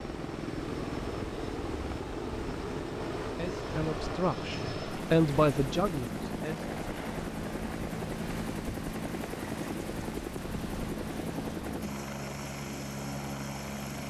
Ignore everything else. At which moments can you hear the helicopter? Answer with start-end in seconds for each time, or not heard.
0.0-14.0.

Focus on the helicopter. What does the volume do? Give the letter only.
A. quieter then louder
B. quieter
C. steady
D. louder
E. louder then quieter
C.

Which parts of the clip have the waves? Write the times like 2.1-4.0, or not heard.
0.0-11.8.